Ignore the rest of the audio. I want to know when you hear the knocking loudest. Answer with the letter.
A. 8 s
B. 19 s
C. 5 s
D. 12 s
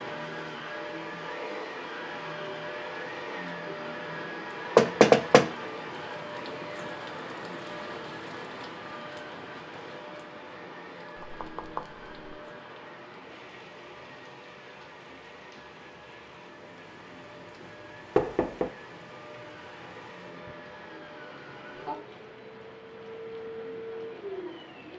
C.